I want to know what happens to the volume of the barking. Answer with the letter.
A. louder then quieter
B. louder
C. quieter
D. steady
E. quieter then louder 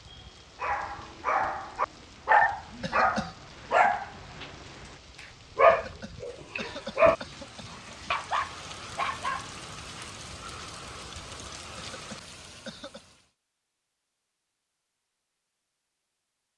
C.